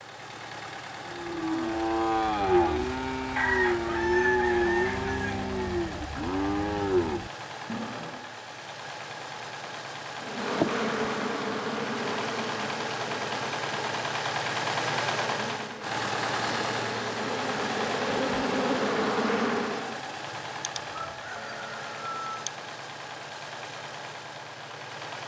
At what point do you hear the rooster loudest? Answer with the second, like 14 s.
4 s.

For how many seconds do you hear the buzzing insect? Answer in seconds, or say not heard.
10 s.